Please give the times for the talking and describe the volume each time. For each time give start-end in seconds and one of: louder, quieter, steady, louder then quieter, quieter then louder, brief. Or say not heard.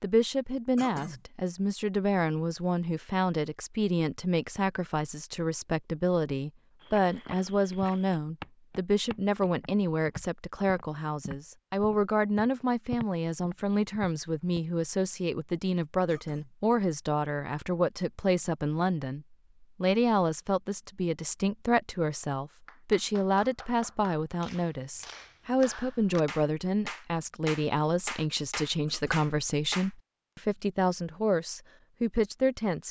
0.0-32.8 steady.